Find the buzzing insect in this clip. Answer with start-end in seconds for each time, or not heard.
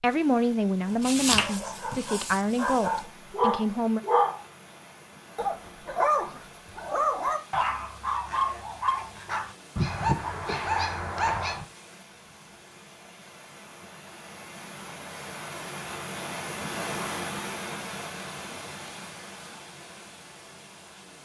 not heard.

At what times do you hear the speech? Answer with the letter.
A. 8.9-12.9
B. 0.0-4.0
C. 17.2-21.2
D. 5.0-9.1
B.